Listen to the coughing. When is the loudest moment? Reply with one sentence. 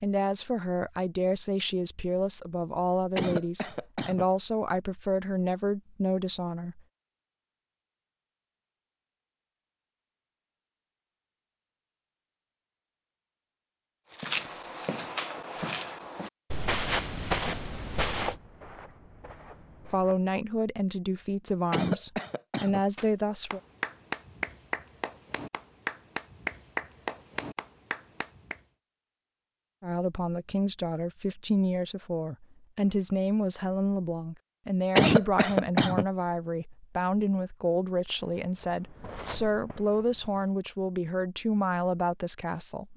The loudest moment of the coughing is at 35 seconds.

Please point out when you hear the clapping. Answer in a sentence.
The clapping can be heard from 22.9 to 28.6 s.